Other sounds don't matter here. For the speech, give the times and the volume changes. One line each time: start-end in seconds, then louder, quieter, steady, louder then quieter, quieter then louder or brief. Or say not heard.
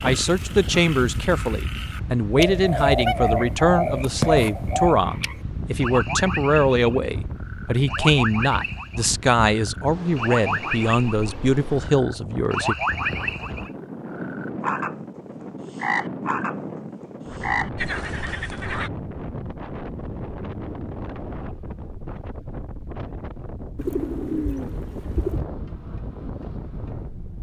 0.0-12.8 steady.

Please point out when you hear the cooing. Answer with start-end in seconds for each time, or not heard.
2.4-5.0, 23.8-25.5.